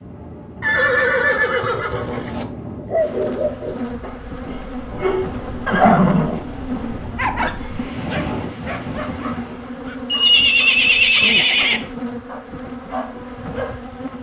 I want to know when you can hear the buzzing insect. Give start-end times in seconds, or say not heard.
3.0-14.1.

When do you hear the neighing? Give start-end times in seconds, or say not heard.
0.6-2.5, 5.7-6.4, 10.1-11.8.